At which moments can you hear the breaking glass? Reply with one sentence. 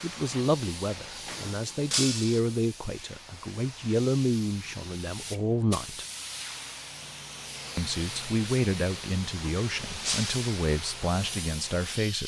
You can hear the breaking glass from 1.9 to 2.4 s and from 10.0 to 10.4 s.